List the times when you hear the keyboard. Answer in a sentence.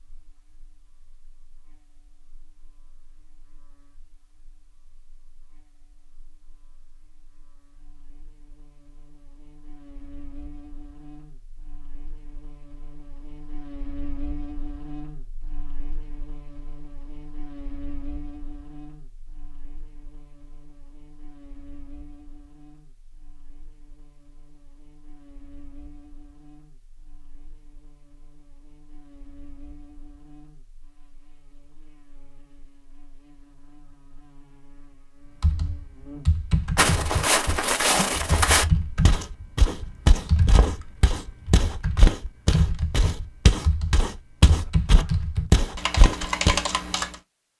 The keyboard can be heard from 35.4 to 47.1 s.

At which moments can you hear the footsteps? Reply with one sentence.
The footsteps can be heard from 36.8 to 46.6 s.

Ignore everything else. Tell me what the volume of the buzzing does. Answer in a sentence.
The loudness of the buzzing goes up, then down.